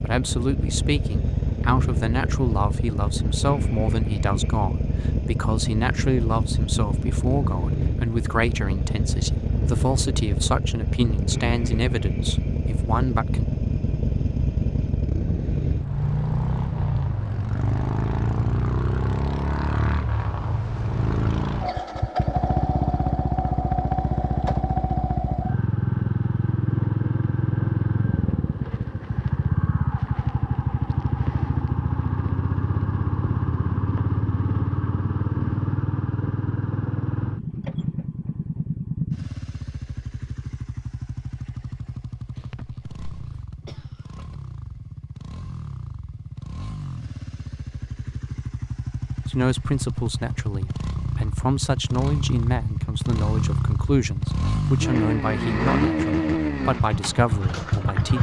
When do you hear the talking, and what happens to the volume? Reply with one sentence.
The talking can be heard from 0.0 to 13.5 s, at a steady volume; and from 49.2 to 58.1 s, at a steady volume.